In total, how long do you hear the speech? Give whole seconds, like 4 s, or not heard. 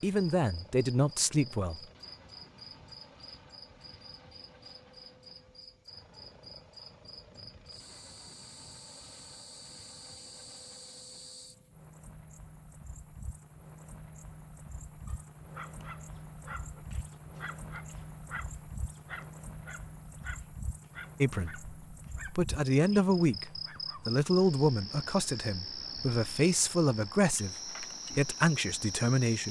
10 s.